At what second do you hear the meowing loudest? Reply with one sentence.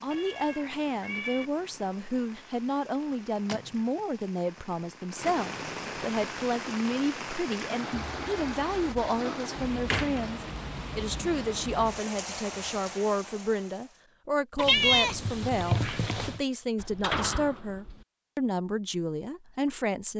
The loudest moment of the meowing is at 15 seconds.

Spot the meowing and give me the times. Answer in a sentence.
You can hear the meowing from 0.1 to 1.5 s, from 7.9 to 9.2 s and from 14.6 to 16.4 s.